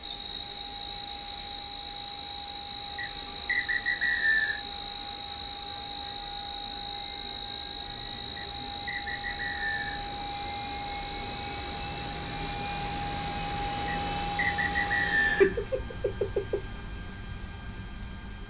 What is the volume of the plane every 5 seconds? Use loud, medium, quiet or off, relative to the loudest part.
medium, medium, loud, medium.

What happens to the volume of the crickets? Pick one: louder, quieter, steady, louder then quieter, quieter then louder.
quieter.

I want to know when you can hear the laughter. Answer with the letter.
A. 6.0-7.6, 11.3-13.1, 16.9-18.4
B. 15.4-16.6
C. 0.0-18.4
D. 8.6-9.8
B.